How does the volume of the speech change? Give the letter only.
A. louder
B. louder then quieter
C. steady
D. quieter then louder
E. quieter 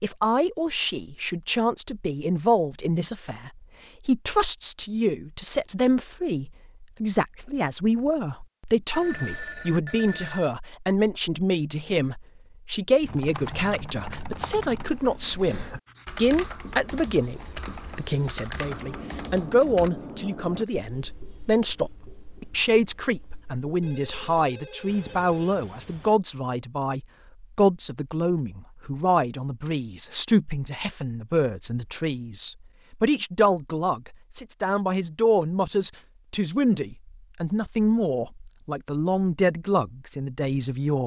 C.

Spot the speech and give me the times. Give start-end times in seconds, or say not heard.
0.0-41.0.